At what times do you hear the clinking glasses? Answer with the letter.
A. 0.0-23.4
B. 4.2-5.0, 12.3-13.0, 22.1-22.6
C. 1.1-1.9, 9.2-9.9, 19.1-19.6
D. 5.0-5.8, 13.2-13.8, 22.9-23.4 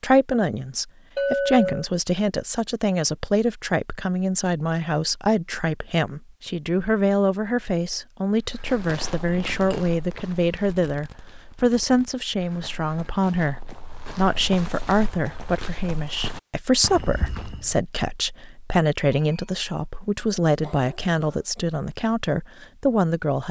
C.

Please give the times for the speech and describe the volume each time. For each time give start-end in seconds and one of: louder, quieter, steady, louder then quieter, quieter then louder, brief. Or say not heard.
0.0-23.4 steady.